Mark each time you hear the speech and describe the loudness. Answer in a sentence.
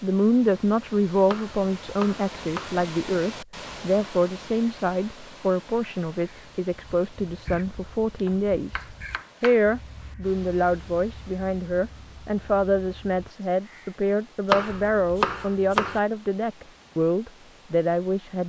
You can hear the speech from 0.0 to 18.4 s, at a steady volume.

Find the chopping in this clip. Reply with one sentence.
You can hear the chopping from 1.2 to 2.8 s, from 8.2 to 9.6 s and from 14.5 to 16.0 s.